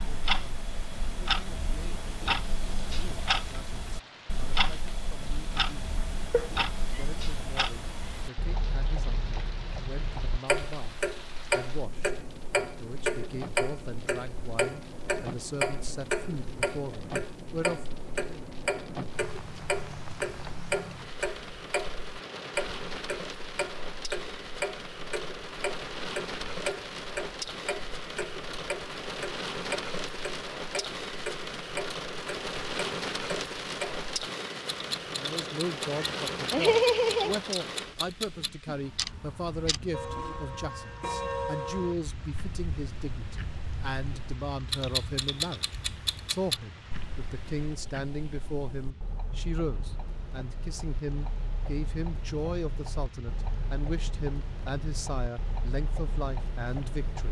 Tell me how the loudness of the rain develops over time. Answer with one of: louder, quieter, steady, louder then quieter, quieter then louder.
louder then quieter.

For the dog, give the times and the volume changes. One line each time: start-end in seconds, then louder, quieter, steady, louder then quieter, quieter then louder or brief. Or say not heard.
not heard.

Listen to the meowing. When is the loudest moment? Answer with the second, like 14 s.
37 s.